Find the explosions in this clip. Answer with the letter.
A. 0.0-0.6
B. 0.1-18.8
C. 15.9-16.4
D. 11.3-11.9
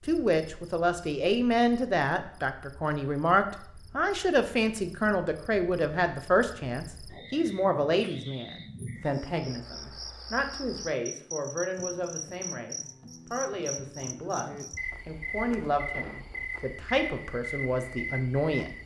C.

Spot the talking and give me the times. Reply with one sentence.
You can hear the talking from 0.1 to 18.8 s.